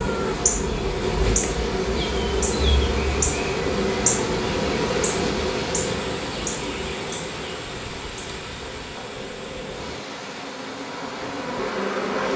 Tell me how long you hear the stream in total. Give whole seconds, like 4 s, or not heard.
12 s.